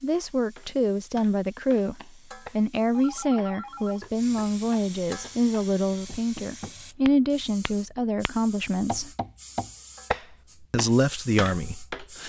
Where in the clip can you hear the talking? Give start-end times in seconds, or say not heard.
0.0-9.1, 10.7-12.2.